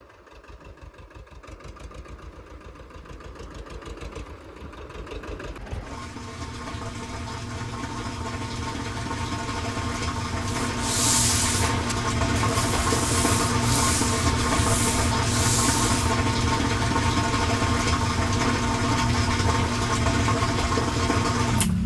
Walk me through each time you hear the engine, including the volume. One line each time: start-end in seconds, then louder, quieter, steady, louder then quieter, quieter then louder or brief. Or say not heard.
0.0-21.8 louder.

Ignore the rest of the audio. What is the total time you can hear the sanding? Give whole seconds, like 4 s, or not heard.
6 s.